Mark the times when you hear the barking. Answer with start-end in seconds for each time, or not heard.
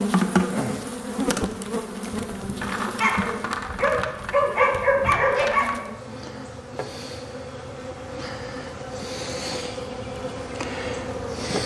3.0-5.8.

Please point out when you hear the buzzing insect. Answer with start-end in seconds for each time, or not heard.
0.0-11.6.